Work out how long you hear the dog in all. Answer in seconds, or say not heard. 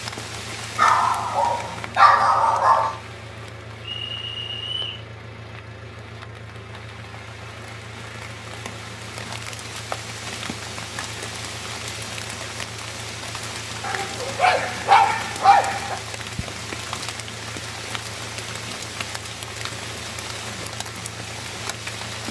4 s.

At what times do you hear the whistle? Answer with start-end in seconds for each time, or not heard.
3.8-5.0.